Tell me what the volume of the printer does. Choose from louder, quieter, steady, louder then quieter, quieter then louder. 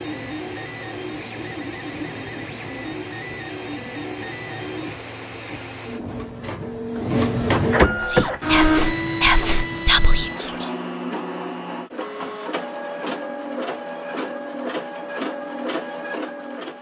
louder then quieter.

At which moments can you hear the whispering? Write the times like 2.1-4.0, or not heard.
8.0-10.7.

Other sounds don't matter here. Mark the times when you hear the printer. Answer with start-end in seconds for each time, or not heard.
0.0-16.7.